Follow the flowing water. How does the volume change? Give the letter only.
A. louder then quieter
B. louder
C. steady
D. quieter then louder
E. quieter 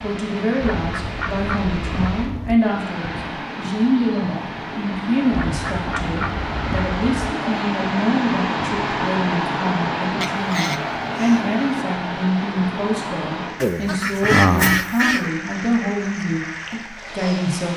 A.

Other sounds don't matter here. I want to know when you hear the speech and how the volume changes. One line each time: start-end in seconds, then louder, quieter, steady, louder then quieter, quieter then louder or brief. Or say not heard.
0.0-17.7 steady.